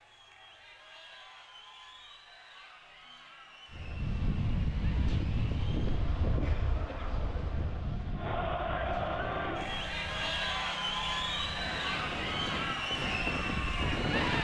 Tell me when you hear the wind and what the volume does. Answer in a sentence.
The wind can be heard from 3.7 to 14.3 s, getting quieter then louder.